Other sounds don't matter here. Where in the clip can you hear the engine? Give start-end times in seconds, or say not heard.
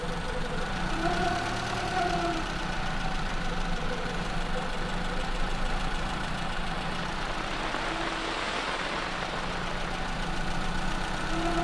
0.0-11.5.